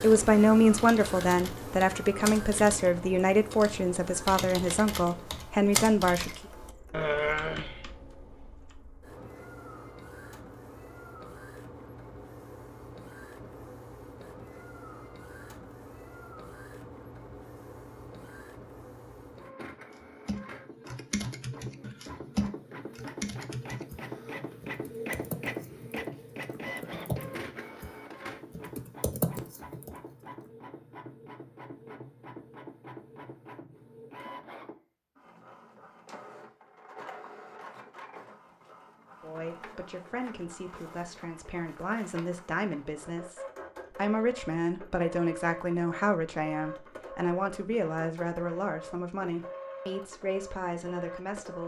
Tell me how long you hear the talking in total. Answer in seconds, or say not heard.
19 s.